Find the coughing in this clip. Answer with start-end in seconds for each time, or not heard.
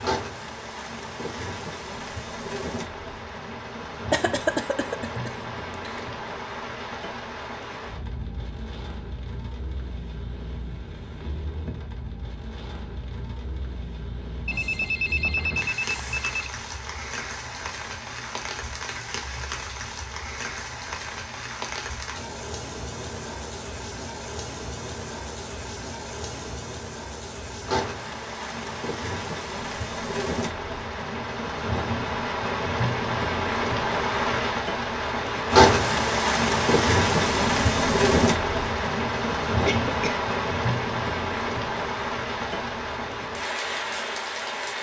4.1-6.0, 39.6-40.2.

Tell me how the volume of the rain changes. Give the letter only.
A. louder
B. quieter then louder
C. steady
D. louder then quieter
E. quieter
A.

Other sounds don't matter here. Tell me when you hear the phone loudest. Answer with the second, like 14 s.
15 s.